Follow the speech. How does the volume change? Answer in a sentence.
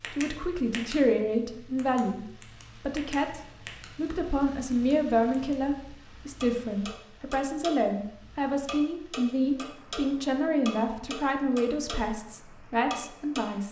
The loudness of the speech stays about the same.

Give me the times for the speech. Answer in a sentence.
You can hear the speech from 0.1 to 13.6 s.